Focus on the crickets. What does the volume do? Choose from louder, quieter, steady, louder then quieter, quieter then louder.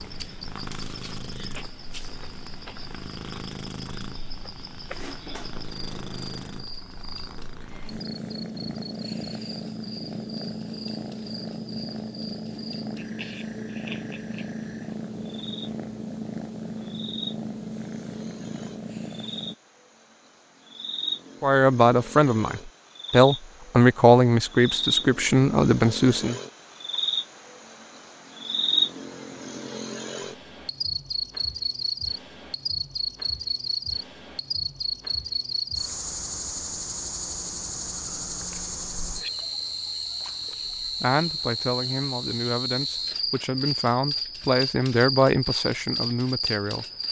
louder.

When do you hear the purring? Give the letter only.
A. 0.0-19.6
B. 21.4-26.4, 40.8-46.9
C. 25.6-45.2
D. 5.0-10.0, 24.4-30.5
A.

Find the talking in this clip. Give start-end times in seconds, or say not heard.
21.4-26.4, 40.8-46.9.